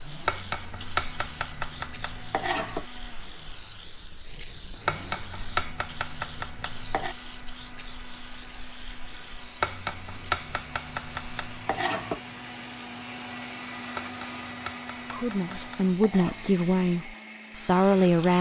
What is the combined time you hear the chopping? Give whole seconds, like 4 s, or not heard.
10 s.